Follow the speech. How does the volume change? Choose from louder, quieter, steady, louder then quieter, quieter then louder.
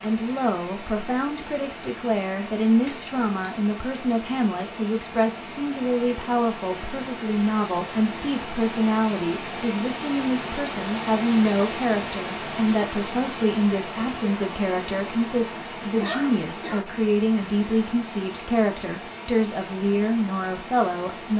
steady.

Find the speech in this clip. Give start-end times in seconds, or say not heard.
0.0-21.3.